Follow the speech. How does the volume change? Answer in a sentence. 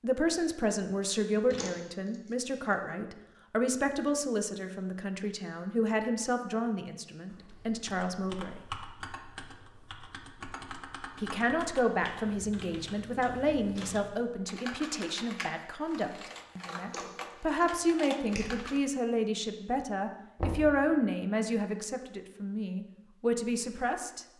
The volume of the speech stays about the same.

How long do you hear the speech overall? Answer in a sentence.
The speech can be heard for 22 seconds in total.